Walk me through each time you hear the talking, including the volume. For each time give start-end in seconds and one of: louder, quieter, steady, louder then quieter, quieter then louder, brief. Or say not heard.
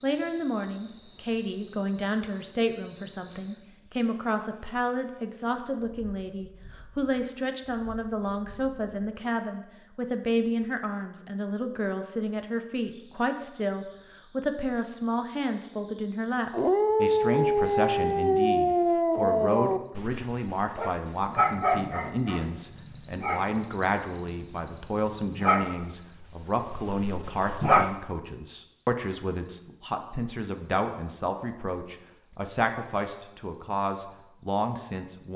0.0-35.3 steady.